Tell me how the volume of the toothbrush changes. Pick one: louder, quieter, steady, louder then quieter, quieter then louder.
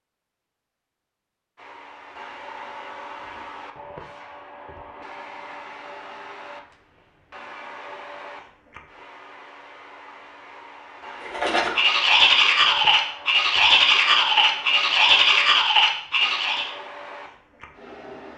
steady.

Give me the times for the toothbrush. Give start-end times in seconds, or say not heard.
11.2-16.7.